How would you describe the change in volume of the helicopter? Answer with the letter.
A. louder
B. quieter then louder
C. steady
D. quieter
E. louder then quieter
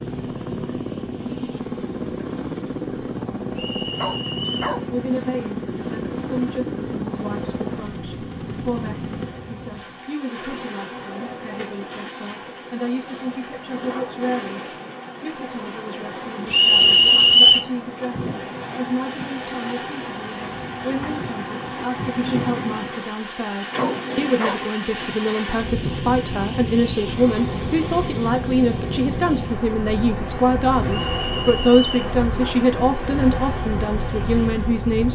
C.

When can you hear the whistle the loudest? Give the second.
17 s.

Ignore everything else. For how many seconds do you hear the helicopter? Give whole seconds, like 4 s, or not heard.
9 s.